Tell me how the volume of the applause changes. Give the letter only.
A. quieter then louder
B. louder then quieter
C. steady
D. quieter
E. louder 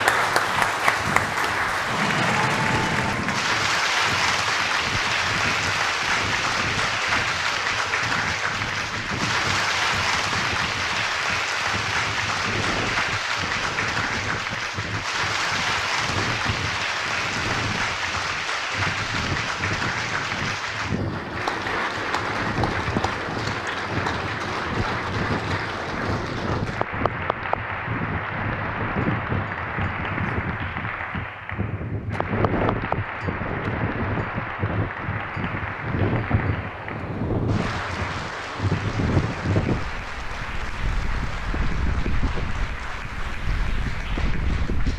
D.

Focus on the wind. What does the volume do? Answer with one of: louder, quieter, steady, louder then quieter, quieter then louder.
louder.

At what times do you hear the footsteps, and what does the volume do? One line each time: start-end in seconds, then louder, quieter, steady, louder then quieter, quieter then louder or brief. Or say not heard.
not heard.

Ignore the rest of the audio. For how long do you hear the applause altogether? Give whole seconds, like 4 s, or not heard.
45 s.